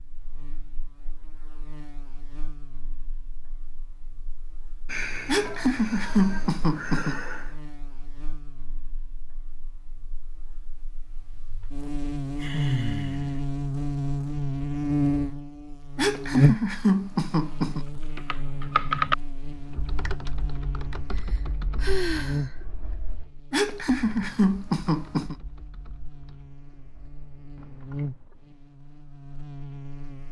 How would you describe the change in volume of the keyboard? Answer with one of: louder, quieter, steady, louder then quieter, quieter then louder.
quieter.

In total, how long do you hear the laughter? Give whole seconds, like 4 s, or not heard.
6 s.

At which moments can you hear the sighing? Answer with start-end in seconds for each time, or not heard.
4.8-7.5, 12.4-13.4, 21.1-22.6.